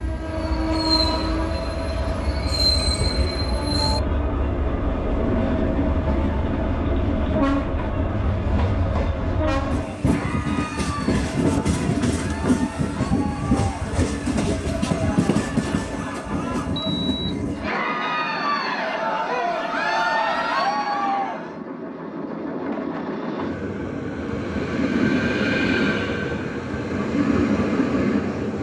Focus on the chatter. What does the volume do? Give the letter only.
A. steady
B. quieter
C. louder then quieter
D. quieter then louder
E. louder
E.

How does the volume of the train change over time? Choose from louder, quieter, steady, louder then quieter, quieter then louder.
quieter then louder.